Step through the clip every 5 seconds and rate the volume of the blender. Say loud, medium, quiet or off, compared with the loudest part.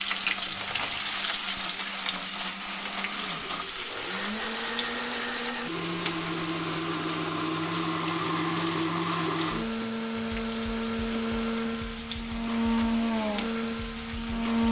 medium, loud, loud.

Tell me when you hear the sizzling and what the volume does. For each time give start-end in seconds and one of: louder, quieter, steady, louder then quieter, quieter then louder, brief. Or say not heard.
0.0-14.6 quieter.